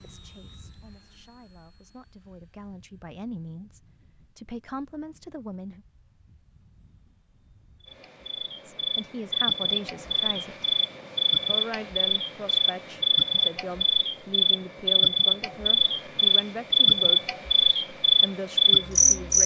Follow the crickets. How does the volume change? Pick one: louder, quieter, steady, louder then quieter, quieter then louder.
louder.